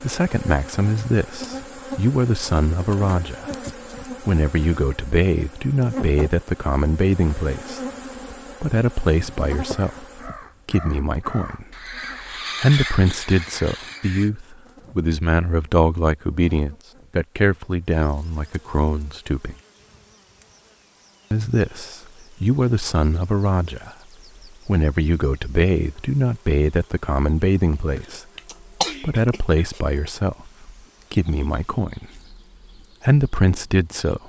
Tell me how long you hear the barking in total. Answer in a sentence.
You can't hear the barking here.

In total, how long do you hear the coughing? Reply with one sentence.
You can hear the coughing for 2 seconds altogether.